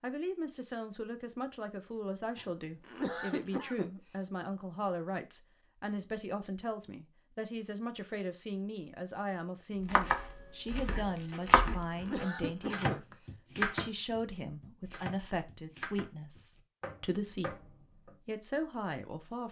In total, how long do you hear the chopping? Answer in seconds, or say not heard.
8 s.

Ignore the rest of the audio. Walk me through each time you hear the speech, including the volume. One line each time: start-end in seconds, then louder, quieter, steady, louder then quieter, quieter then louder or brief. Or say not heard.
0.0-19.4 steady.